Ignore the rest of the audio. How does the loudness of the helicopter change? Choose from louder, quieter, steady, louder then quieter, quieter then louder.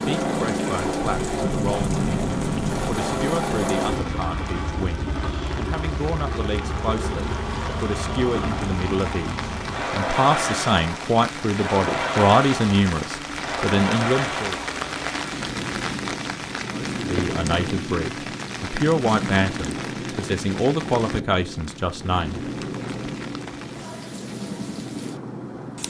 quieter.